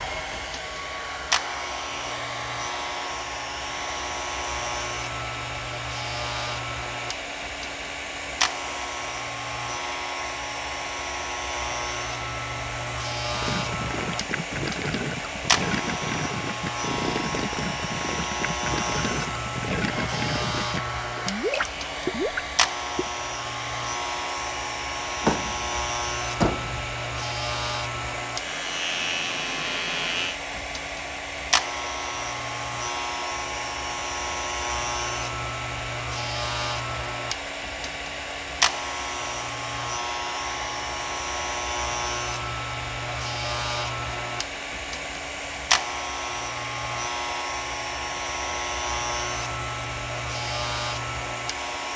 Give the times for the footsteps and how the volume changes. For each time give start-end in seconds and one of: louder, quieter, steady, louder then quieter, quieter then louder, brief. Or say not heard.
not heard.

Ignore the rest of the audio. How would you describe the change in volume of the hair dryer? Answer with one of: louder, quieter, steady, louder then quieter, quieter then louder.
steady.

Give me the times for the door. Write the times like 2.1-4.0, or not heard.
25.2-26.9.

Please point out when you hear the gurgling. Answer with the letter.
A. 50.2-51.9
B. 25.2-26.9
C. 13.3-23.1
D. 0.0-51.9
C.